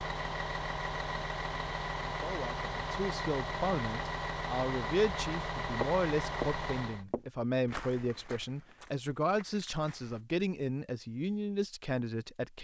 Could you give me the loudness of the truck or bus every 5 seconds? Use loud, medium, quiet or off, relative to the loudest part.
loud, loud, off.